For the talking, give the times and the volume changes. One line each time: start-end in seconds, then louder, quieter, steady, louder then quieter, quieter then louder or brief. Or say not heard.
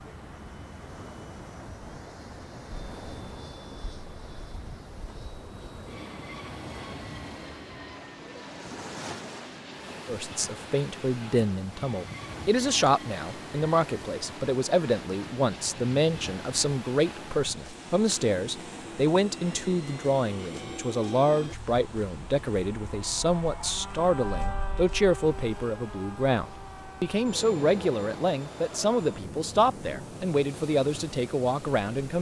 10.1-32.1 steady.